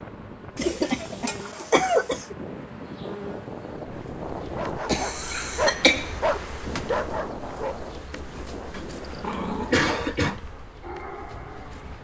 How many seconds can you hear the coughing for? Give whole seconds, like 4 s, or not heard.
5 s.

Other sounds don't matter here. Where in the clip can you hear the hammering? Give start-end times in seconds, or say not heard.
not heard.